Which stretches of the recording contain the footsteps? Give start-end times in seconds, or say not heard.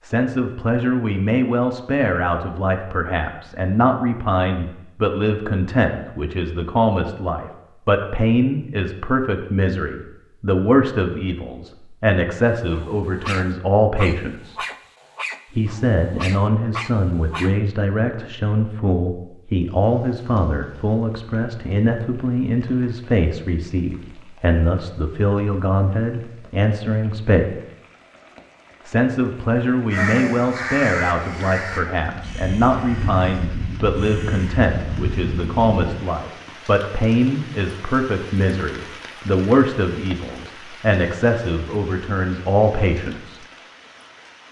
not heard.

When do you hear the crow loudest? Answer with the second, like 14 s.
30 s.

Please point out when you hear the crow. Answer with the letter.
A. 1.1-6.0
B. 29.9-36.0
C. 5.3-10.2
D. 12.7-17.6
B.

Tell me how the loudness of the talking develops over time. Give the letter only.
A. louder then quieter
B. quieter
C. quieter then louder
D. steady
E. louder
D.